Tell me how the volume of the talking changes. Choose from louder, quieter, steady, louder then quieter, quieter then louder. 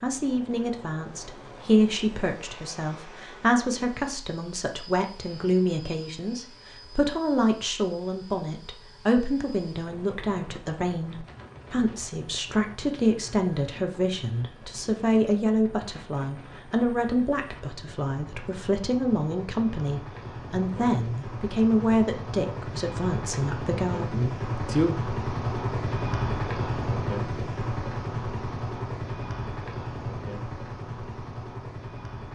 steady.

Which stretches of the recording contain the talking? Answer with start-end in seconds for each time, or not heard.
0.0-25.0.